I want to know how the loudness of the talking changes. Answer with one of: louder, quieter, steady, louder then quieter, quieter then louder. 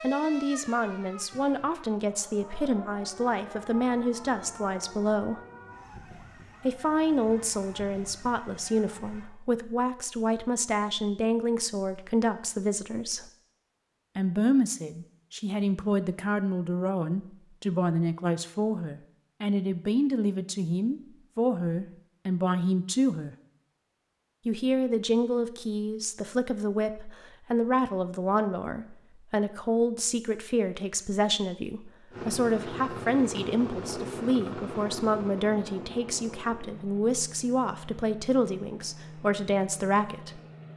steady.